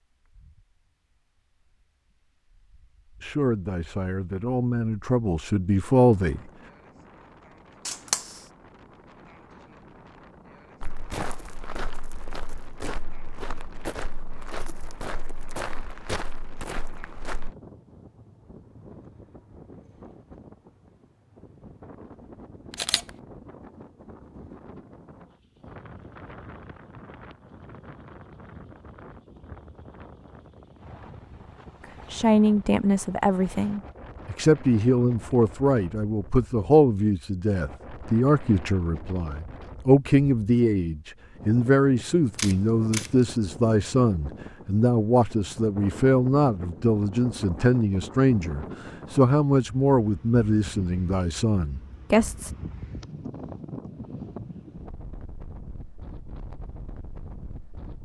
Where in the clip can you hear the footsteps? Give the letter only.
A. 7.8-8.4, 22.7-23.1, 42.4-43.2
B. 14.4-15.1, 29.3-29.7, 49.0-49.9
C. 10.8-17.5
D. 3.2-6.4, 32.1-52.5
C.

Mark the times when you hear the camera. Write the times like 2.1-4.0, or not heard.
7.8-8.4, 22.7-23.1, 42.4-43.2.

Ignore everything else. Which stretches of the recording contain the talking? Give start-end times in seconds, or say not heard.
3.2-6.4, 32.1-52.5.